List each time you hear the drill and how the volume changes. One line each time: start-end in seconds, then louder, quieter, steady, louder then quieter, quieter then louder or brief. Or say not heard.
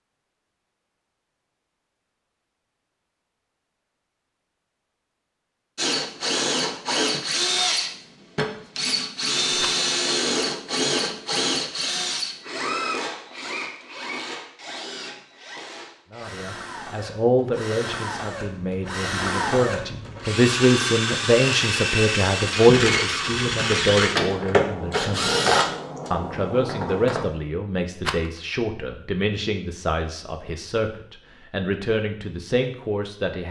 5.8-27.2 quieter then louder.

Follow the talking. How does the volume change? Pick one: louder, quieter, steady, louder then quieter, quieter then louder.
louder then quieter.